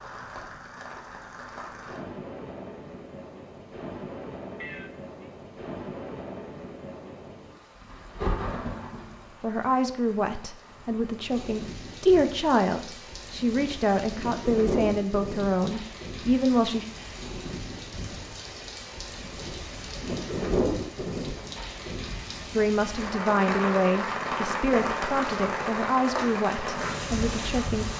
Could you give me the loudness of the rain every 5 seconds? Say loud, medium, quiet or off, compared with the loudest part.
medium, medium, medium, medium, loud, loud.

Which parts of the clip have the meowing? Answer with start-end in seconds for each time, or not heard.
4.5-5.3.